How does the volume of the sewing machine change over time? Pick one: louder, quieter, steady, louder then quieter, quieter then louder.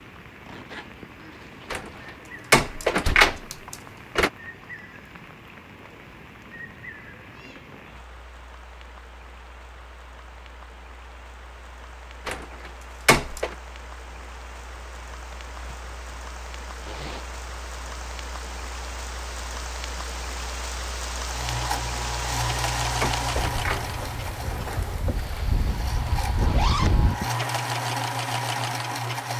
quieter then louder.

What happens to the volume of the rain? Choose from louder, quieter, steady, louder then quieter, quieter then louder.
louder.